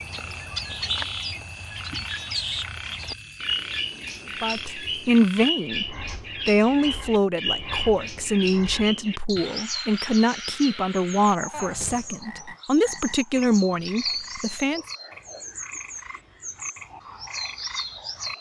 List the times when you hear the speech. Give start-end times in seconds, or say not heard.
4.4-14.8.